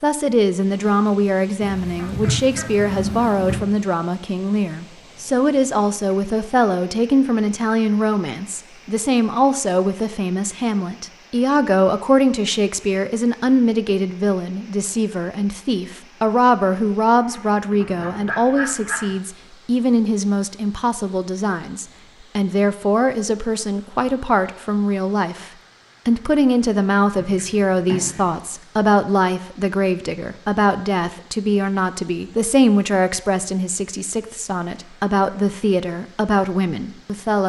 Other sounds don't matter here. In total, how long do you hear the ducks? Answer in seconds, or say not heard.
5 s.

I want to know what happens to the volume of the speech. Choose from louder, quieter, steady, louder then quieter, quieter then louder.
steady.